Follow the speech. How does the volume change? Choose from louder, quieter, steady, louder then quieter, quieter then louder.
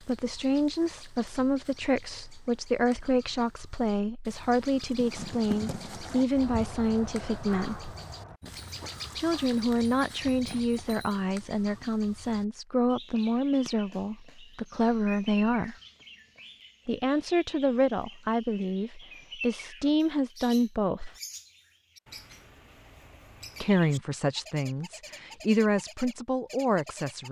steady.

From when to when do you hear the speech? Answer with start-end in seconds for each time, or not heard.
0.1-7.9, 9.2-15.8, 16.9-21.1, 23.6-27.2.